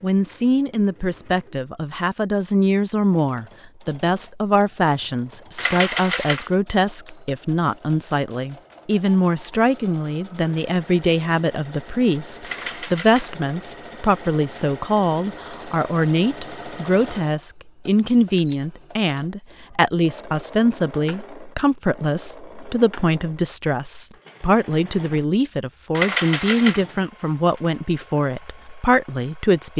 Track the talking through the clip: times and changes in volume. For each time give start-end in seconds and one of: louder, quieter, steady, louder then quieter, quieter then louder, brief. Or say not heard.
0.0-29.7 steady.